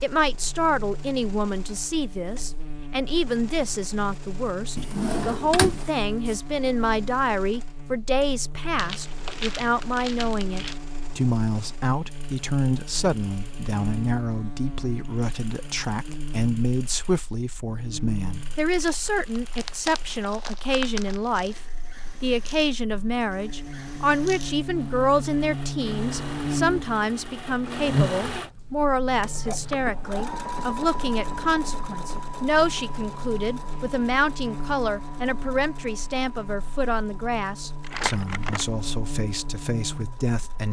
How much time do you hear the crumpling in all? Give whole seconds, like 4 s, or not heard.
6 s.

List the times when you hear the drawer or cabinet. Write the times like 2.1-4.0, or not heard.
4.8-6.3.